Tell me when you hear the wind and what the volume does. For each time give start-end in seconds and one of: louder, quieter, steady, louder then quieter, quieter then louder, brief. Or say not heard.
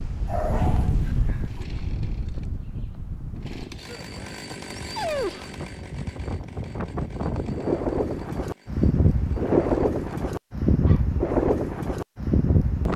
0.0-12.9 quieter then louder.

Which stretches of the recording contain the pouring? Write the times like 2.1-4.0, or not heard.
not heard.